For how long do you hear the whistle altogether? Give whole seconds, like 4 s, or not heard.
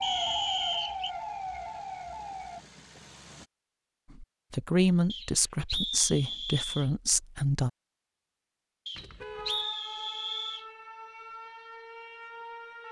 5 s.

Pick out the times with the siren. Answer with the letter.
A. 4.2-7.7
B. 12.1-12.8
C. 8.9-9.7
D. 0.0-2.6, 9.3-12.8
D.